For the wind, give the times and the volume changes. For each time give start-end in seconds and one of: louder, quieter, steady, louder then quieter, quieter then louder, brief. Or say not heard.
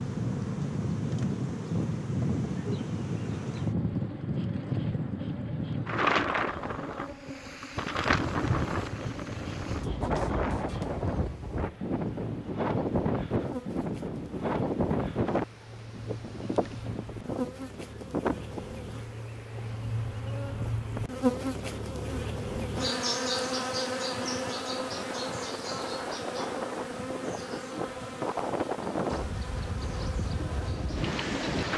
0.0-31.7 quieter then louder.